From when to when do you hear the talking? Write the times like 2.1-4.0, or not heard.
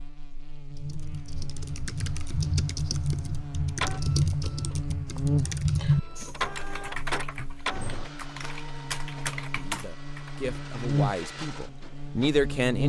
9.6-12.8.